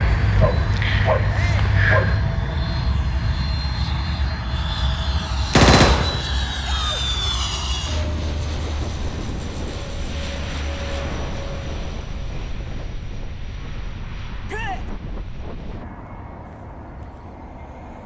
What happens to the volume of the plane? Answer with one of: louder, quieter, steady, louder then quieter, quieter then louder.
quieter.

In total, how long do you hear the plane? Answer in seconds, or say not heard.
18 s.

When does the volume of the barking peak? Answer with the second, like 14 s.
2 s.